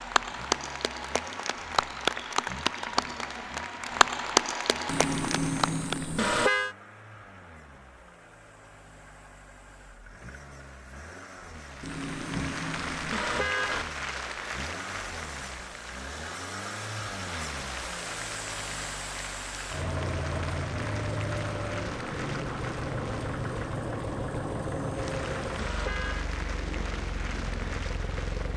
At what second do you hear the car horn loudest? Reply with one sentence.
The volume of the car horn peaks at 6 seconds.